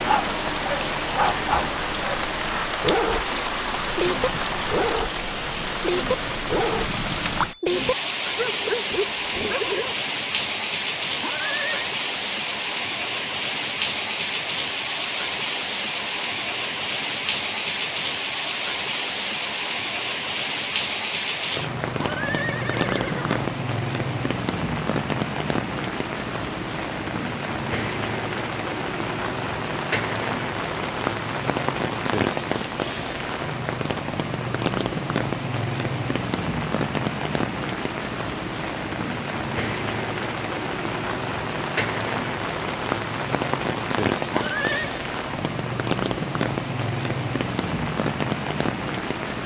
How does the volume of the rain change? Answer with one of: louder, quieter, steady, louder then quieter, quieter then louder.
steady.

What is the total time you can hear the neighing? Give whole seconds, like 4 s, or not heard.
3 s.